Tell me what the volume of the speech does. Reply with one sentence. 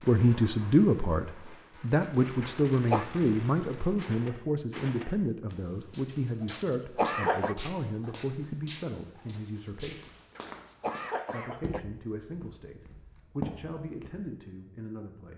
The loudness of the speech goes down.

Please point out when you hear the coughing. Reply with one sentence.
You can hear the coughing from 2.4 to 3.0 s, from 6.5 to 7.5 s and from 10.3 to 11.8 s.